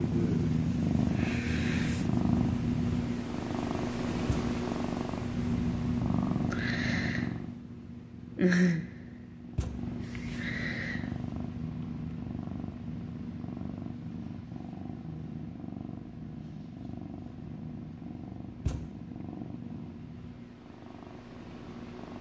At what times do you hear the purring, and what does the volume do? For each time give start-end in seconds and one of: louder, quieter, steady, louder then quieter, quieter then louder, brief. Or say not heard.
0.0-22.1 quieter.